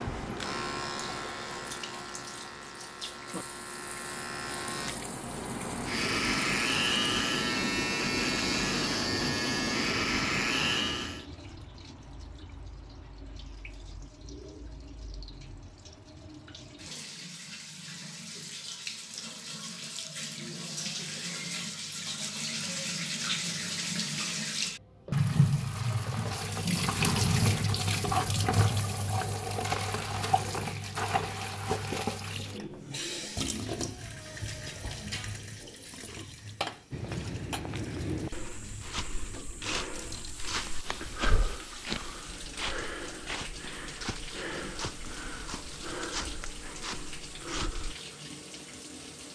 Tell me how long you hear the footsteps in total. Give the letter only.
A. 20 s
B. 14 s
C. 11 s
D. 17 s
C.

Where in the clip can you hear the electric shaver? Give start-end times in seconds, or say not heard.
0.0-11.2.